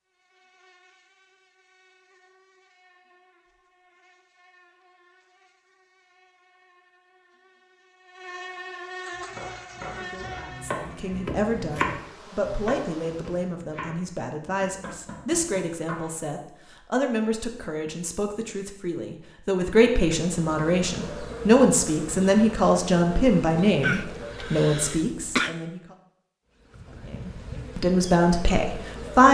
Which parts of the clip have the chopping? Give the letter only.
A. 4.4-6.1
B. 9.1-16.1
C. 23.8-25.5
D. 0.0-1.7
B.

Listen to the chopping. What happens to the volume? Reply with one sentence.
The volume of the chopping goes up, then down.